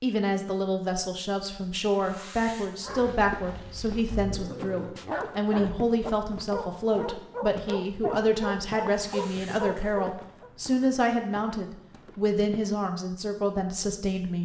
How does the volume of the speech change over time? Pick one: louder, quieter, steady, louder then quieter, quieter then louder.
steady.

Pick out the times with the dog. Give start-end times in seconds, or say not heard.
2.8-10.5.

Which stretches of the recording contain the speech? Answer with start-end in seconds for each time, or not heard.
0.0-14.4.